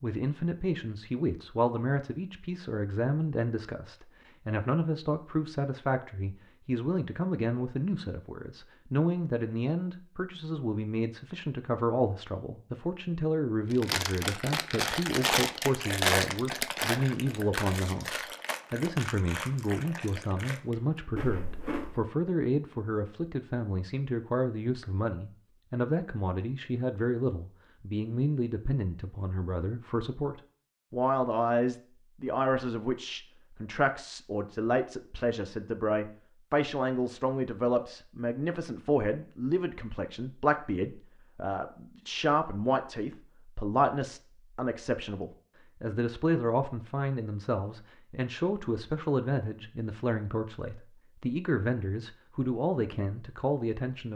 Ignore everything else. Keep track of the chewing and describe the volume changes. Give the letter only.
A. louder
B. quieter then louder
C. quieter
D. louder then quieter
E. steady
C.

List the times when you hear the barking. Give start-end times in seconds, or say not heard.
not heard.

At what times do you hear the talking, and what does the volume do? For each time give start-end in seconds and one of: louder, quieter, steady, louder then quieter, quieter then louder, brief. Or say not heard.
0.0-54.1 steady.